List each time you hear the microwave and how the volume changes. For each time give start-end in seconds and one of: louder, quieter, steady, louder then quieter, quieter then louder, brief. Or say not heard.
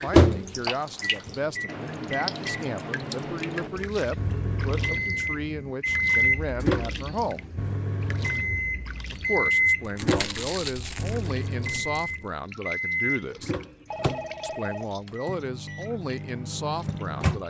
0.0-17.4 louder then quieter.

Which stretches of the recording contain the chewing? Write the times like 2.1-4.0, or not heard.
9.8-12.3.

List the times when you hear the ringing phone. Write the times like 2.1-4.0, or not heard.
13.8-14.9.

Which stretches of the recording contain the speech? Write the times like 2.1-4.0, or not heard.
0.0-7.5, 9.1-13.6, 14.4-17.4.